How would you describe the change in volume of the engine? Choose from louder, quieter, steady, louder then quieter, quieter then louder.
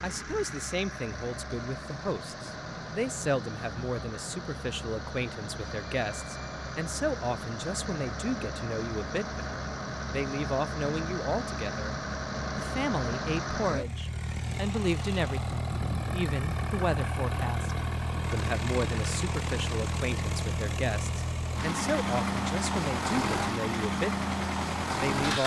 louder.